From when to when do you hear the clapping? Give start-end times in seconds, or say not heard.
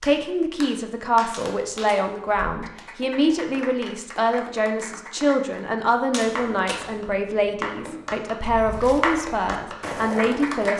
0.0-10.7.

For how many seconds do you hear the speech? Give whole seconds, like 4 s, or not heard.
11 s.